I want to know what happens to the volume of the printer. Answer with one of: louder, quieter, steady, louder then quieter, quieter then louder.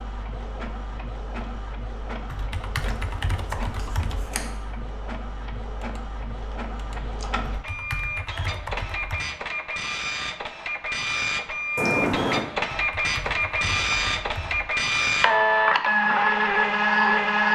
louder.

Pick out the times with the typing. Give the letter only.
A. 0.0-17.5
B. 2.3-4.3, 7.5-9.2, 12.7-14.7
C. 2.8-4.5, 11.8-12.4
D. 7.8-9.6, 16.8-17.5
B.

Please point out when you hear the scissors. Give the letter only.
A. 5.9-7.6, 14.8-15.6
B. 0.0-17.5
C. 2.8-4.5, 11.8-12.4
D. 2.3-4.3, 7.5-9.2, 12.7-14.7
C.